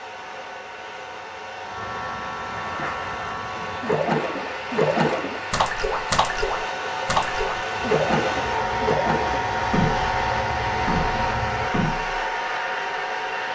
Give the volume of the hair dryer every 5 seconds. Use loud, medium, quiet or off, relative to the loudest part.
medium, loud, loud.